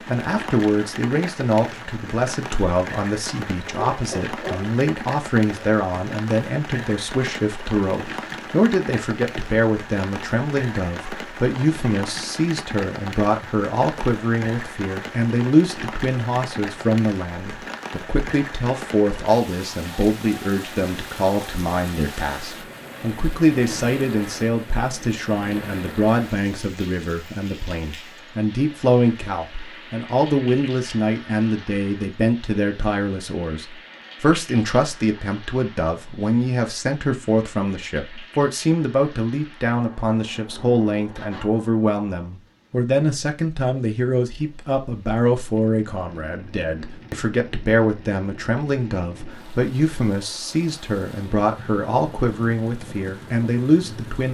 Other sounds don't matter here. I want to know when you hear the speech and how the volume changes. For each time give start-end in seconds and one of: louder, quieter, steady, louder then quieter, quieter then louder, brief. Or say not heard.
0.1-54.2 steady.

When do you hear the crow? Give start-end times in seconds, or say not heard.
not heard.